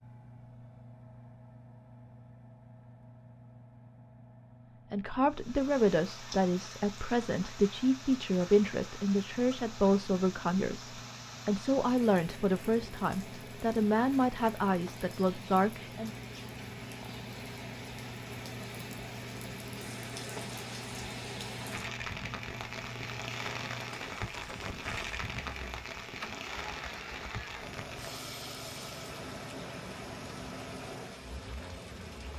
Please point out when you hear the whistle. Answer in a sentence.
You can't hear the whistle here.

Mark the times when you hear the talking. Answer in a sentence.
The talking can be heard from 4.9 to 16.1 s.